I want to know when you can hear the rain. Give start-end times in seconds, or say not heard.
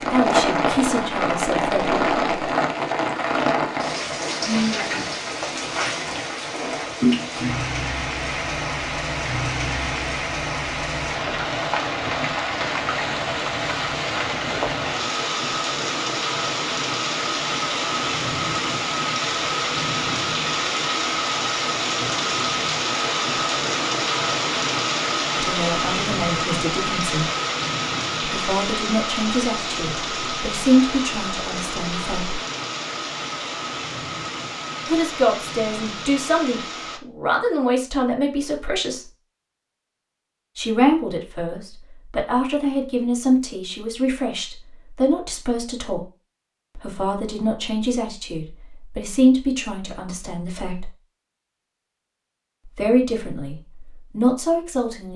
0.0-37.0.